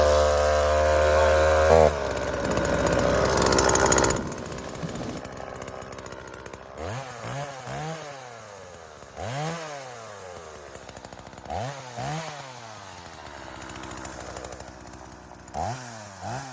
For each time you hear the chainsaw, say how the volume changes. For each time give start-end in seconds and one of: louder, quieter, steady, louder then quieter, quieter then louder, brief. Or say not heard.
0.0-16.4 quieter.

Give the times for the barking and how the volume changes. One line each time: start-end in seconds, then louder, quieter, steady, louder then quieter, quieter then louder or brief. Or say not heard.
not heard.